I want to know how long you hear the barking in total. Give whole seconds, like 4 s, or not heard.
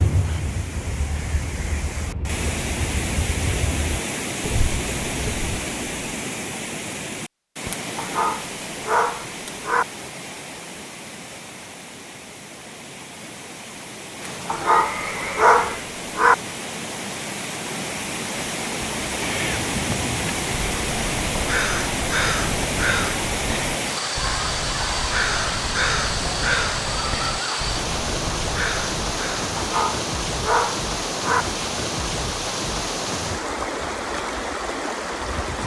6 s.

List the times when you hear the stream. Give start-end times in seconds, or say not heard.
0.0-35.6.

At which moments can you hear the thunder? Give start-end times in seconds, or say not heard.
not heard.